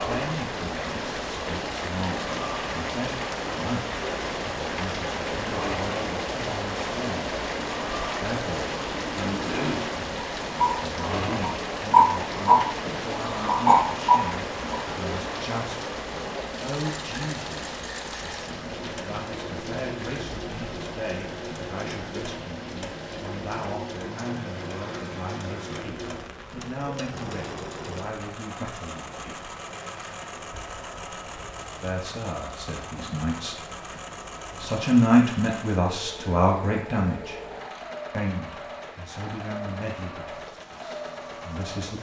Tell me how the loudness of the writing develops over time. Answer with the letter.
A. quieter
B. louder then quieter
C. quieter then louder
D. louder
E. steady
D.